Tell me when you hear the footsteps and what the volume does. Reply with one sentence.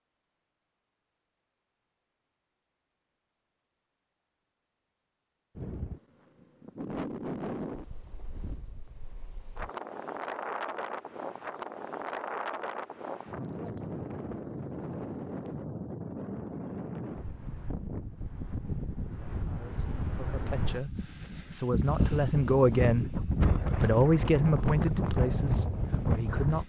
You can't hear the footsteps here.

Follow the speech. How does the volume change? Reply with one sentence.
The volume of the speech goes up, then down.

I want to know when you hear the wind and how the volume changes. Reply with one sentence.
The wind can be heard from 5.5 to 26.6 s, getting louder.